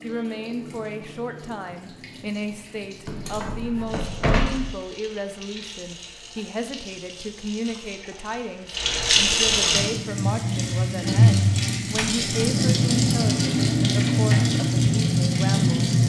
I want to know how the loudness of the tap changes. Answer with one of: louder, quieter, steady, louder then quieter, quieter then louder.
louder.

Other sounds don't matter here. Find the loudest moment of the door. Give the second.
4 s.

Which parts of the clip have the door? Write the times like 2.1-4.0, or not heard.
3.0-4.8, 11.9-12.3.